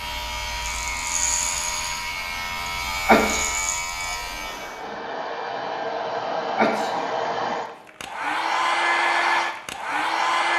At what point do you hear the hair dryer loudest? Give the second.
9 s.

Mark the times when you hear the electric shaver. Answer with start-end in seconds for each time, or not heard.
0.0-4.8.